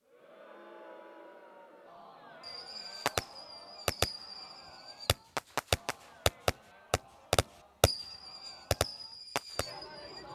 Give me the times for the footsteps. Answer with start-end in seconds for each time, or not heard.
not heard.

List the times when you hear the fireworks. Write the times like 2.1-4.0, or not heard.
2.4-10.3.